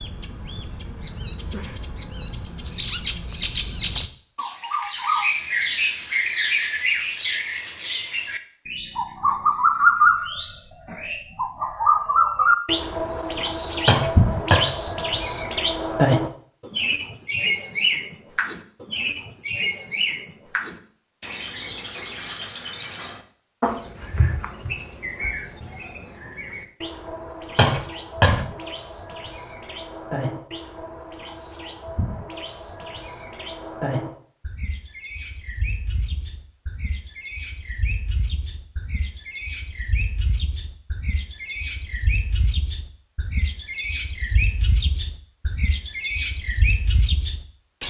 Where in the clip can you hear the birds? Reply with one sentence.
You can hear the birds from 0.0 to 47.8 s.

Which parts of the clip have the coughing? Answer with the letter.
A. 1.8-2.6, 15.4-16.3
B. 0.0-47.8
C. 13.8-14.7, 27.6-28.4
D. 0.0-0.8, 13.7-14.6
C.